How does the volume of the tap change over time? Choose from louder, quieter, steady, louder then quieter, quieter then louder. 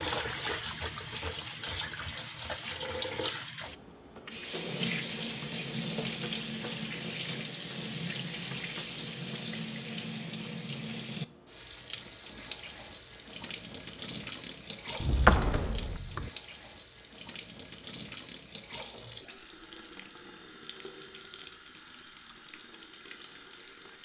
quieter.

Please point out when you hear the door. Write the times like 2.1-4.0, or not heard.
15.0-16.3.